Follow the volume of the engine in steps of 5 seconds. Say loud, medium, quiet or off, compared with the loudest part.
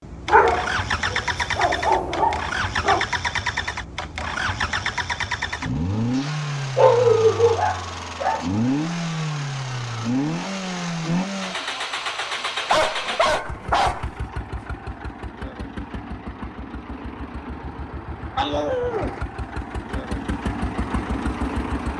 loud, loud, loud, medium, loud.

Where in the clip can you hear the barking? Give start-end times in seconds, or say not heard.
0.2-3.0, 6.2-8.4, 12.7-14.1, 18.4-19.1.